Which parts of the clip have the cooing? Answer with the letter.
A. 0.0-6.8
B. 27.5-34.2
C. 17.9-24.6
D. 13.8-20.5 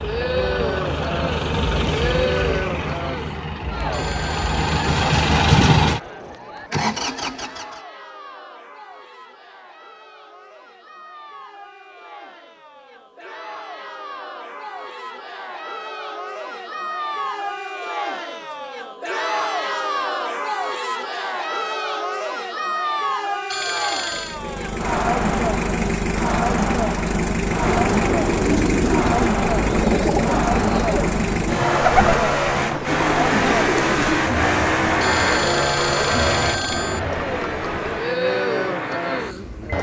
B.